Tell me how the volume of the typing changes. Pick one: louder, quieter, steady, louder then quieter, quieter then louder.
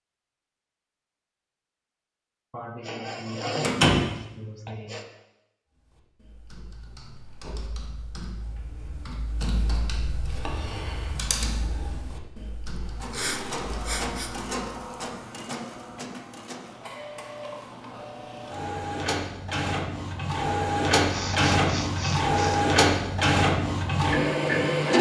louder then quieter.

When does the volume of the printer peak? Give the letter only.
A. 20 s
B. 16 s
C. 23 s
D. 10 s
C.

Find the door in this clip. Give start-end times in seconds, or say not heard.
3.6-4.0.